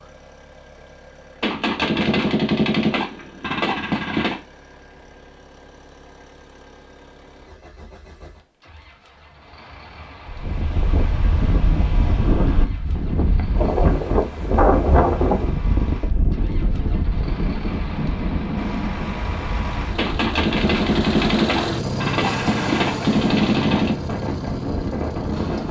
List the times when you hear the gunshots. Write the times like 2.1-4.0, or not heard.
1.4-4.4, 19.9-23.9.